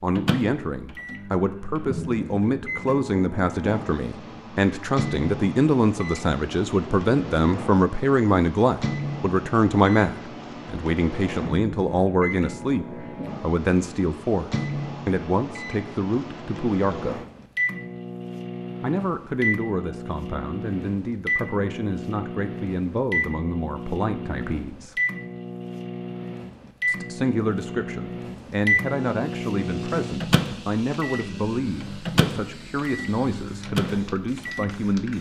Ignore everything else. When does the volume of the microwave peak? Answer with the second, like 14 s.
29 s.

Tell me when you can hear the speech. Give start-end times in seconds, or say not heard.
0.0-17.2, 18.8-24.9, 26.9-35.1.